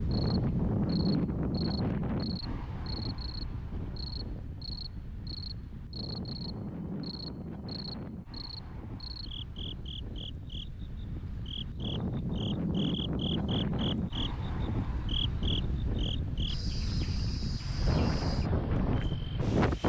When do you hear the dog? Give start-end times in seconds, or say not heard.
not heard.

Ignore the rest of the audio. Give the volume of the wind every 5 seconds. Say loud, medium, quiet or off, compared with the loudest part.
loud, medium, loud, loud.